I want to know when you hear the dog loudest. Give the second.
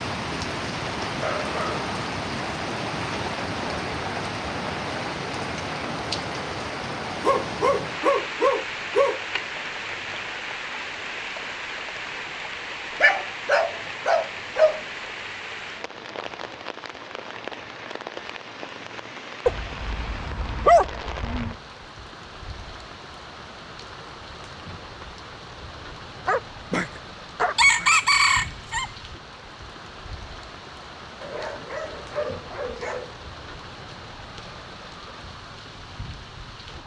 21 s.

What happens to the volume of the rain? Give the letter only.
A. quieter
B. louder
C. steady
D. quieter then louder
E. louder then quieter
A.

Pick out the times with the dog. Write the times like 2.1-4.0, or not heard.
1.0-1.9, 7.2-9.2, 13.0-14.8, 19.4-21.6, 26.2-27.9, 31.2-33.1.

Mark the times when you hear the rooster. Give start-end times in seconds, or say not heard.
27.6-28.9.